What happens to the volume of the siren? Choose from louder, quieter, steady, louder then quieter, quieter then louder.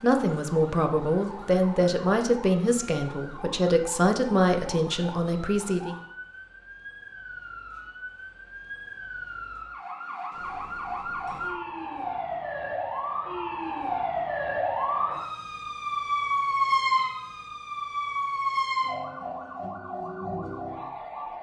louder.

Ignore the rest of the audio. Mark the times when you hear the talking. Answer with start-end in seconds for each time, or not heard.
0.0-6.0.